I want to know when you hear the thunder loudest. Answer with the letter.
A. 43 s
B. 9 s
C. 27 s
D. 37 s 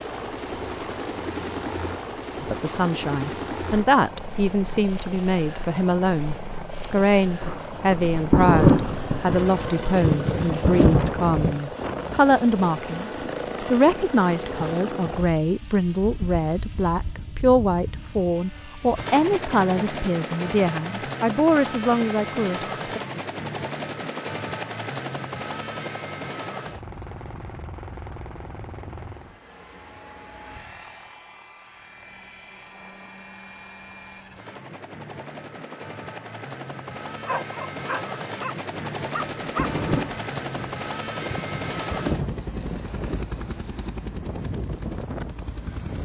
B.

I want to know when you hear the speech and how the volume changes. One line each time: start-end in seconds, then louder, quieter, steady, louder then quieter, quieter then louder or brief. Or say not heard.
2.4-23.0 steady.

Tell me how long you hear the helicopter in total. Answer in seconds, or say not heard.
46 s.